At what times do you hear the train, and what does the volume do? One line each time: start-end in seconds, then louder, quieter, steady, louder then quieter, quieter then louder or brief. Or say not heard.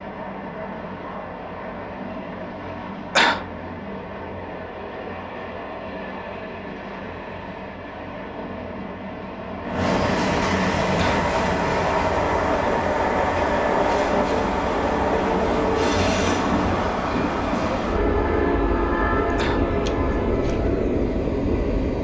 0.0-21.9 louder.